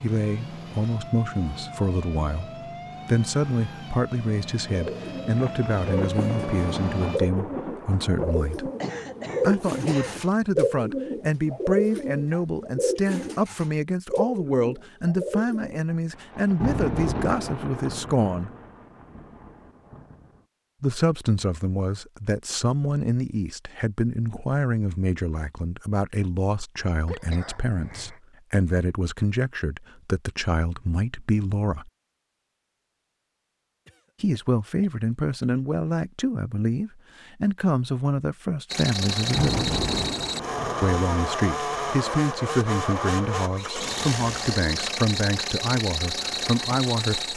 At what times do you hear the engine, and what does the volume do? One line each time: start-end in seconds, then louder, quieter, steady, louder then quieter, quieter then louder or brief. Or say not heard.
0.0-7.2 louder
38.6-47.3 steady.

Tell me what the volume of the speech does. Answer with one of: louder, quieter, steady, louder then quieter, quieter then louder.
steady.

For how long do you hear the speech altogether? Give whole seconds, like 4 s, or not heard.
41 s.